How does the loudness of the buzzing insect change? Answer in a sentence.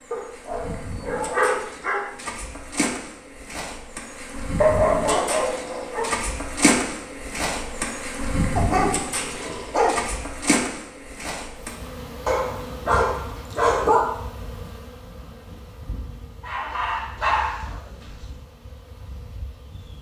The volume of the buzzing insect goes up, then down.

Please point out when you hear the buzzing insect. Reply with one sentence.
You can hear the buzzing insect from 0.0 to 19.9 s.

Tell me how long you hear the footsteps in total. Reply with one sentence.
You can't hear the footsteps here.